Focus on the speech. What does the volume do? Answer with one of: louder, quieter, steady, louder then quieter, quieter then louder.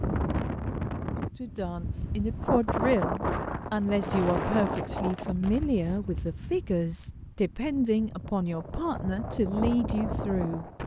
steady.